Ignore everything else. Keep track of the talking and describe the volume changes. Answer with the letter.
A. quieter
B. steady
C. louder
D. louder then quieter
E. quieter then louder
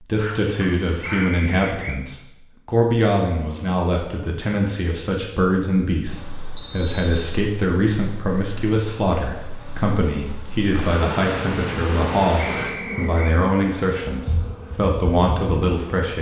B.